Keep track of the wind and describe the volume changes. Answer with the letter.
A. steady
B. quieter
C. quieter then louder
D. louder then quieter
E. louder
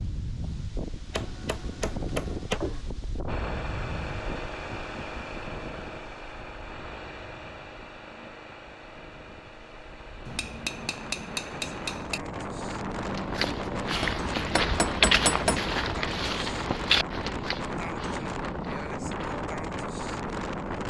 C.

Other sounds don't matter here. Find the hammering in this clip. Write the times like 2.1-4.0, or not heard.
1.1-2.8, 10.2-12.2, 14.0-15.6.